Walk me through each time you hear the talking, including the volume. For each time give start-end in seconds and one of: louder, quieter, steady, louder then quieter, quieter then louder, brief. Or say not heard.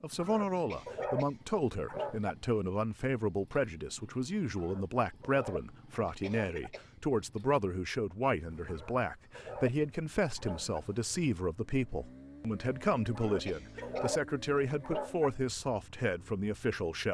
0.0-17.1 steady.